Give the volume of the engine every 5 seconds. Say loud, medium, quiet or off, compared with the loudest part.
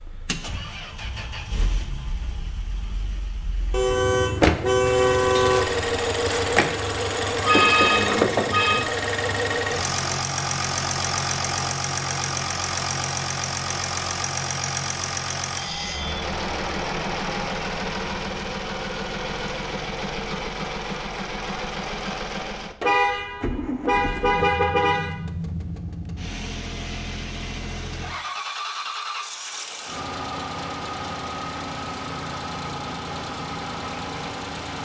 medium, loud, loud, medium, medium, medium, medium.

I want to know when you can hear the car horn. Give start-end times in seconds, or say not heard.
3.7-5.7, 22.8-25.1.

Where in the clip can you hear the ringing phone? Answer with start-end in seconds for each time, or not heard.
7.5-8.8.